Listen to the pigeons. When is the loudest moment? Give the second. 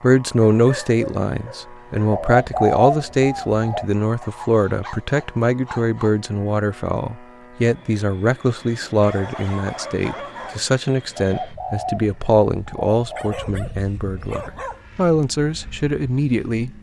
3 s.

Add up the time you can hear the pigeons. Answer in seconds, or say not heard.
4 s.